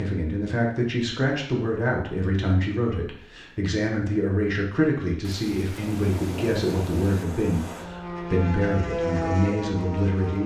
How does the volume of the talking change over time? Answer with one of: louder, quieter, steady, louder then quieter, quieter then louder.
steady.